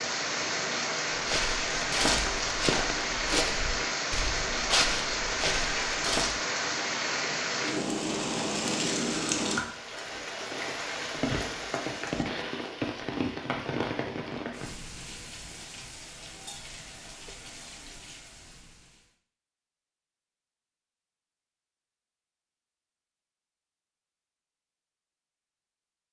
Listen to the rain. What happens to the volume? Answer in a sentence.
The volume of the rain goes down.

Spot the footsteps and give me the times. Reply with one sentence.
You can hear the footsteps from 1.2 to 6.3 s.